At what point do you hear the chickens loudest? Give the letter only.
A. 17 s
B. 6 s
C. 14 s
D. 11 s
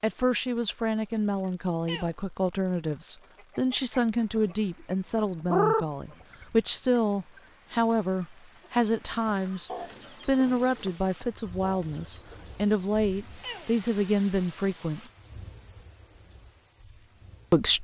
B.